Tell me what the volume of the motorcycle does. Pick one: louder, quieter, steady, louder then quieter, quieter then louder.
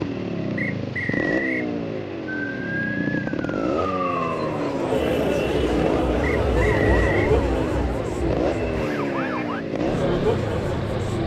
steady.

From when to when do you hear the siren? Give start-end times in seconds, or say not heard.
2.2-9.7.